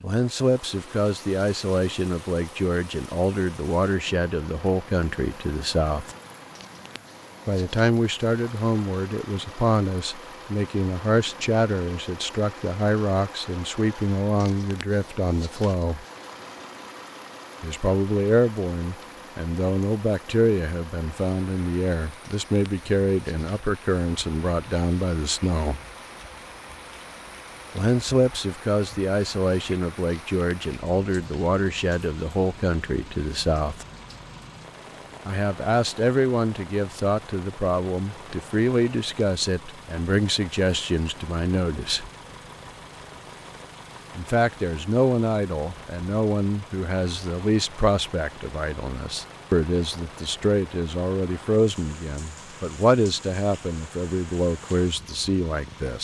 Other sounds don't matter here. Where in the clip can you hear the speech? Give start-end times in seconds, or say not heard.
0.0-6.2, 7.5-16.1, 17.6-25.8, 27.8-33.9, 35.2-42.1, 44.1-55.9.